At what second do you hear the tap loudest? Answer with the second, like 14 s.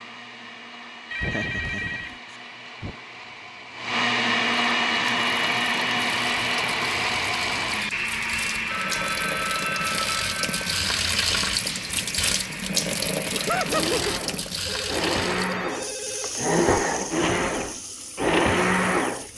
11 s.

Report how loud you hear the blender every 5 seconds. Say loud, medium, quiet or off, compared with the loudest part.
medium, loud, medium, loud.